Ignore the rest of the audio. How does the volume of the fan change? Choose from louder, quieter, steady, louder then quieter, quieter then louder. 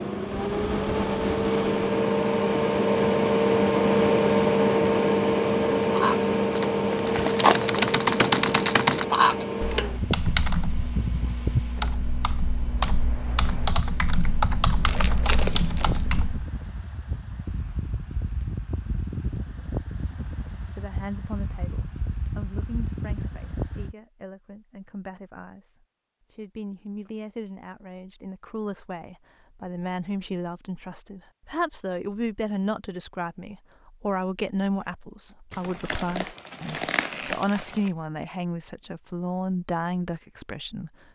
quieter.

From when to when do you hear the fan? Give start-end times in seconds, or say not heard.
0.0-23.9.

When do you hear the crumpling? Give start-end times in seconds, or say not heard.
6.9-7.9, 14.8-16.1, 35.5-37.9.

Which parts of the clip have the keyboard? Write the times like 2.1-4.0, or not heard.
5.8-16.4.